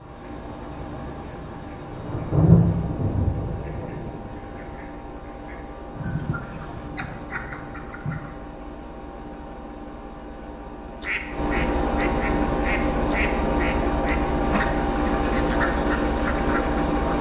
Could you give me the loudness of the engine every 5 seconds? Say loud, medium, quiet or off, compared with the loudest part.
quiet, quiet, loud, loud.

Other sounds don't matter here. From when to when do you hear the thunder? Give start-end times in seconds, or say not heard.
0.7-4.2.